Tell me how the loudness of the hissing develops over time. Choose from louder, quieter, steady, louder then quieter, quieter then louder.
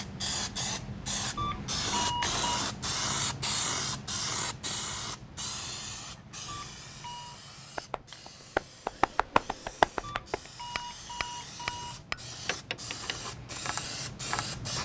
quieter then louder.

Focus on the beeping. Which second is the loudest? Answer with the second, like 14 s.
2 s.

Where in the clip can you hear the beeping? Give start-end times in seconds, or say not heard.
1.4-2.6, 6.5-7.4, 10.0-12.1.